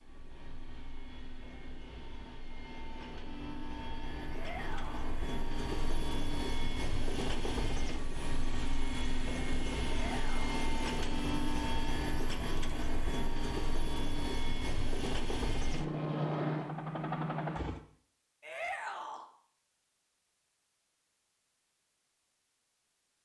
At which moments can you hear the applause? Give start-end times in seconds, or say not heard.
not heard.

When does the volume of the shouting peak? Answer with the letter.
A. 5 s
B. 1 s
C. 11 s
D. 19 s
D.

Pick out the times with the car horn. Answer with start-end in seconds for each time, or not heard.
not heard.